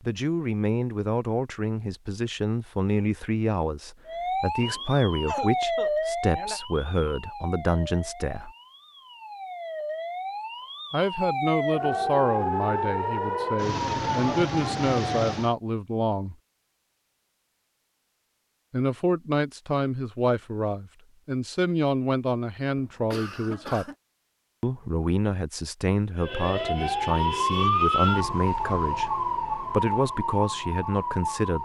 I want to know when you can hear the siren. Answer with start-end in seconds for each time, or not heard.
4.0-15.6, 26.1-31.6.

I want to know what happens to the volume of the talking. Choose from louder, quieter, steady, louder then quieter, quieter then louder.
steady.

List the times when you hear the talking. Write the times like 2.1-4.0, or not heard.
0.0-8.5, 10.9-16.4, 18.7-23.9, 24.6-31.6.